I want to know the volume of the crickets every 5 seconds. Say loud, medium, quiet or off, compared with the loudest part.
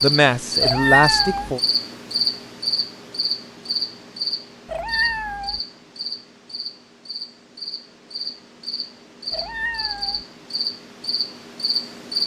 loud, medium, loud.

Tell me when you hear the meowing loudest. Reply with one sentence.
The loudest moment of the meowing is at 1 second.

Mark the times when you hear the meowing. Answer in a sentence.
You can hear the meowing from 0.6 to 1.5 s, from 4.7 to 5.6 s and from 9.3 to 10.2 s.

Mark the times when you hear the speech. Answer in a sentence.
You can hear the speech from 0.0 to 1.6 s.